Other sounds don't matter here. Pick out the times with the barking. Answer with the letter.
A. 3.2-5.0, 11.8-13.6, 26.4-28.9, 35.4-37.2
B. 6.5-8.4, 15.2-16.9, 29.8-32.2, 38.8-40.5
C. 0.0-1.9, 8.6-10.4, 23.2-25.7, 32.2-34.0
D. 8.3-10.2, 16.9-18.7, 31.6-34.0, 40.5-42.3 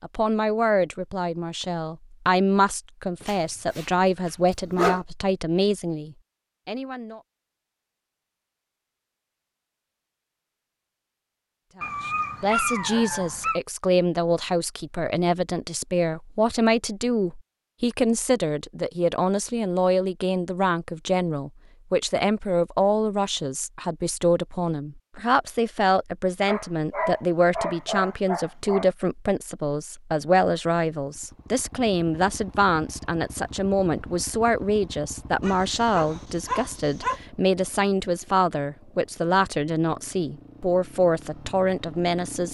A.